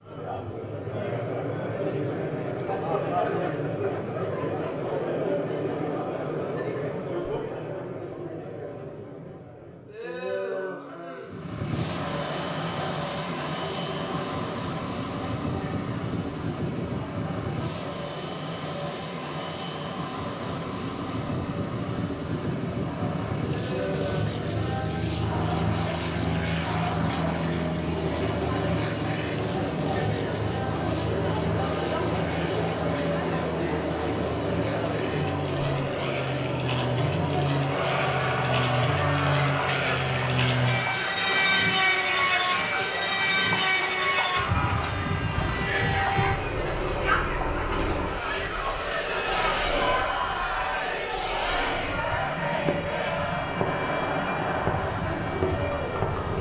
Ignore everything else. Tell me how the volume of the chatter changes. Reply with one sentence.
The volume of the chatter goes down, then up.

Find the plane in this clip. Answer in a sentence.
You can hear the plane from 11.2 to 56.3 s.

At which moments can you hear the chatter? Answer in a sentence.
You can hear the chatter from 0.0 to 56.3 s.